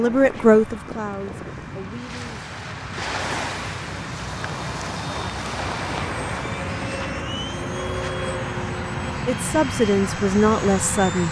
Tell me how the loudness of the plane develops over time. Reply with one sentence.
The volume of the plane goes up.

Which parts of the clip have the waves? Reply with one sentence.
You can hear the waves from 0.0 to 7.2 s.